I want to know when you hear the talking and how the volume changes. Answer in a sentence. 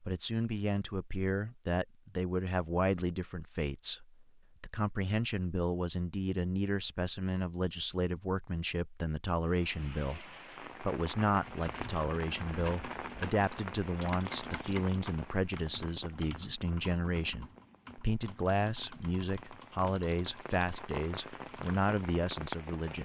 The talking can be heard from 0.0 to 23.0 s, at a steady volume.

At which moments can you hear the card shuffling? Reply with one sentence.
You can't hear the card shuffling here.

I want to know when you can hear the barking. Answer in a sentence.
You can't hear the barking here.